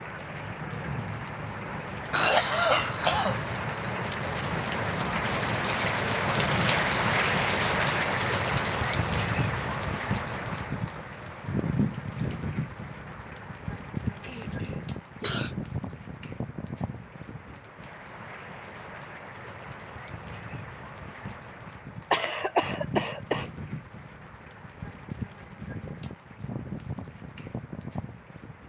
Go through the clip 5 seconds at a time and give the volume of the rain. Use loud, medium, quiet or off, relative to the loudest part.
medium, loud, medium, quiet, quiet, quiet.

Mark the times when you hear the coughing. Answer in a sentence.
You can hear the coughing from 2.1 to 3.5 s, from 14.2 to 15.6 s and from 22.1 to 23.4 s.